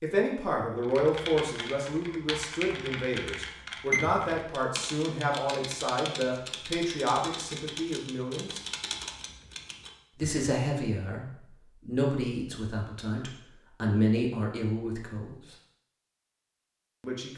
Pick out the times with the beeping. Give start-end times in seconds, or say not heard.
3.9-4.4.